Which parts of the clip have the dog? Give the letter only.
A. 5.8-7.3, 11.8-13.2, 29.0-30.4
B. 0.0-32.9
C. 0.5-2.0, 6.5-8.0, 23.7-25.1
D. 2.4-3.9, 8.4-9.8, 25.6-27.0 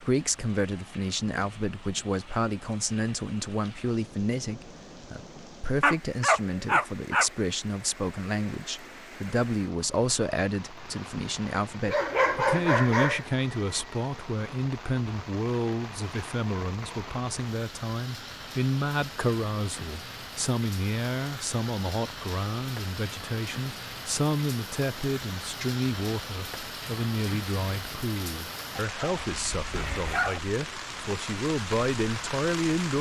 A.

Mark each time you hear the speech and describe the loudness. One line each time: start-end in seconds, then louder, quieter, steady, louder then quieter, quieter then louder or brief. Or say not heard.
0.0-32.9 steady.